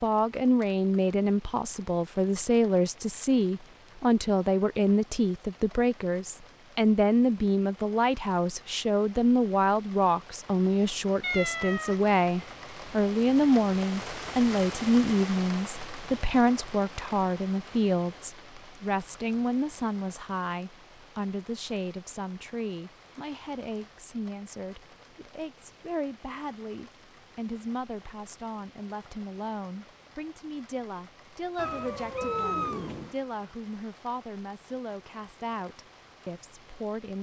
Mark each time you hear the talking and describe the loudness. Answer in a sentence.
The talking can be heard from 0.0 to 37.1 s, getting quieter.